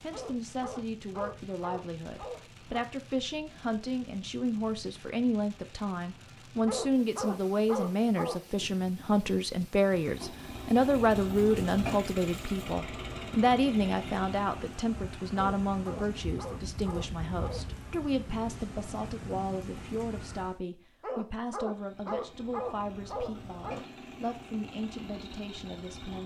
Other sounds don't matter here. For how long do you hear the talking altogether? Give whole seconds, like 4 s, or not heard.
26 s.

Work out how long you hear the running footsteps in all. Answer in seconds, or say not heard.
not heard.